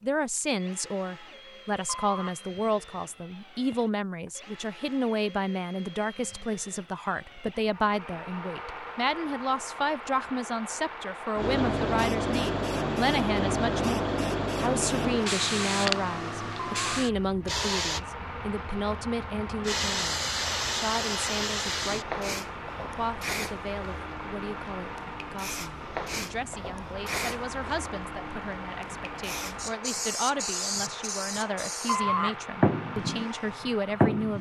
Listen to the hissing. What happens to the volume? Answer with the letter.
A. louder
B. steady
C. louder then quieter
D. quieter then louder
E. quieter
D.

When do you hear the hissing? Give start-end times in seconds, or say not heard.
11.3-34.3.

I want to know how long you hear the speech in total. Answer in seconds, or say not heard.
34 s.